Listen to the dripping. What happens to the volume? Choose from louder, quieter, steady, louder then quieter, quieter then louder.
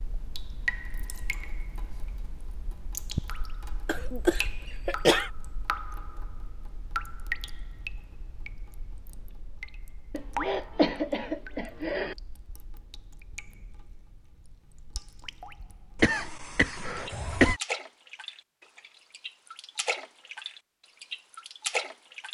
quieter then louder.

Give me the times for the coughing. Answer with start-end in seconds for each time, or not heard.
3.9-5.3, 10.1-12.2, 15.9-17.6.